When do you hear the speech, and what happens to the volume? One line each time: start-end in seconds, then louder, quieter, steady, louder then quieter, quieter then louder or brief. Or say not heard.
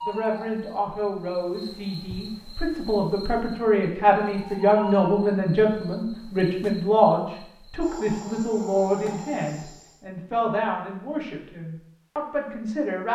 0.1-13.1 louder then quieter.